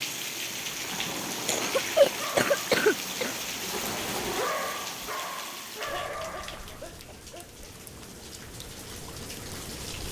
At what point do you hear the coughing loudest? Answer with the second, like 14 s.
2 s.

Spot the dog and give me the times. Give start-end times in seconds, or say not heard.
0.7-6.8.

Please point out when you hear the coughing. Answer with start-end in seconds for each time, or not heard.
1.4-3.4, 5.8-7.7.